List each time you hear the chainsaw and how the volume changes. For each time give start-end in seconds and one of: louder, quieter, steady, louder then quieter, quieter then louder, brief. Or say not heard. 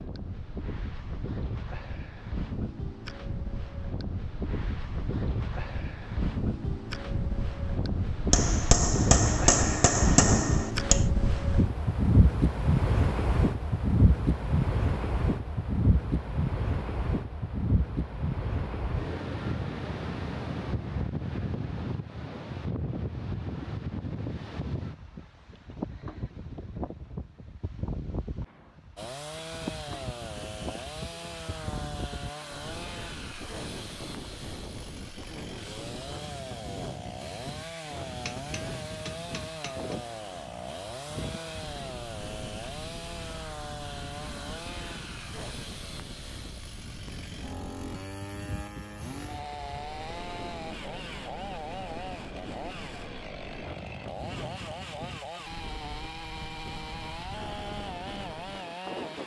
28.9-59.2 steady.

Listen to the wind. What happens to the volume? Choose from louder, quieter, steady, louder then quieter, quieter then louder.
quieter.